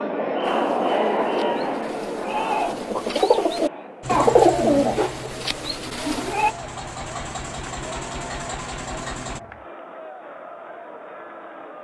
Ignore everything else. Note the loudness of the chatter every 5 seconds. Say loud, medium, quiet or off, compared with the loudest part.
loud, quiet, quiet.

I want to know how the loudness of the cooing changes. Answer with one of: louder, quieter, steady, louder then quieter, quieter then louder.
louder then quieter.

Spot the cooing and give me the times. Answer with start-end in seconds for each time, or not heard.
0.4-6.5.